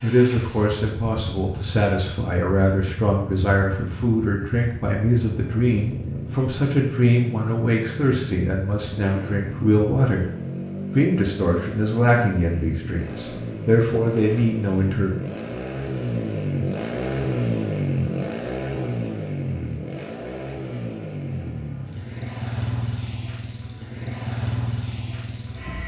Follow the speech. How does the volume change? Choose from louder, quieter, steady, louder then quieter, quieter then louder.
steady.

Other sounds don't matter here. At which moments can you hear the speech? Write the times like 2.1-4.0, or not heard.
0.0-10.2, 10.9-15.1.